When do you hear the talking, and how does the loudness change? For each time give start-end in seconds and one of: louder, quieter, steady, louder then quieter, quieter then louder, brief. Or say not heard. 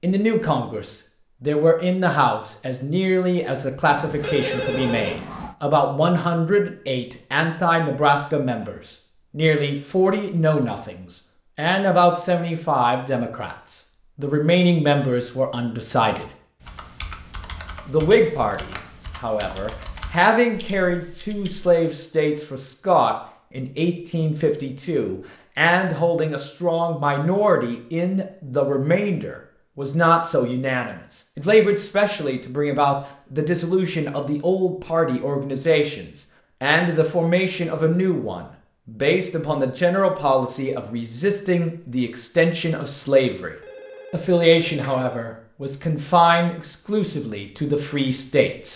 0.0-16.2 steady
17.9-48.7 steady.